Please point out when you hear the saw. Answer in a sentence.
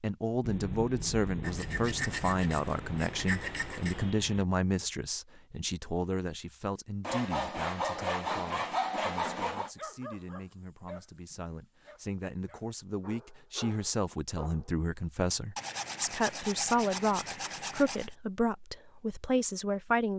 The saw can be heard from 1.4 to 4.2 s, from 7.0 to 9.7 s and from 15.6 to 18.1 s.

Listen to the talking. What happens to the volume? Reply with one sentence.
The loudness of the talking goes down, then up.